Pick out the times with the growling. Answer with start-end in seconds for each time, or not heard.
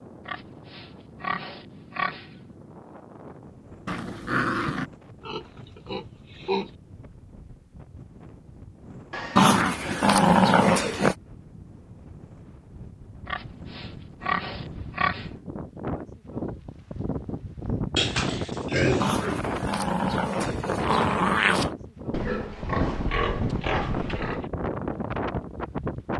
3.9-4.9, 9.3-11.2, 19.0-21.7.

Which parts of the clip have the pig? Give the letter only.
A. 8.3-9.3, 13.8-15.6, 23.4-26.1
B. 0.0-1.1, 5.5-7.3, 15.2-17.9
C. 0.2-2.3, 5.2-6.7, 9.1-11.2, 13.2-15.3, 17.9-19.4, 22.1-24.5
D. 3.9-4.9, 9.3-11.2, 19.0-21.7
C.